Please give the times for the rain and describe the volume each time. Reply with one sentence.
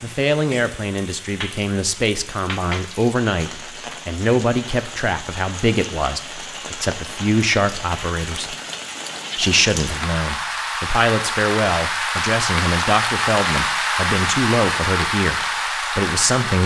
The rain can be heard from 0.0 to 16.6 s, getting louder.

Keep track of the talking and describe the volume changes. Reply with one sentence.
The volume of the talking stays about the same.